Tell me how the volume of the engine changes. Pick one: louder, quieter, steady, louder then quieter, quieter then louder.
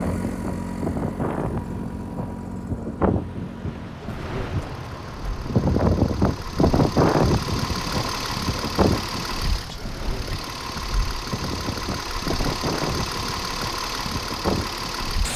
quieter then louder.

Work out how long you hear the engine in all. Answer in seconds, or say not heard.
15 s.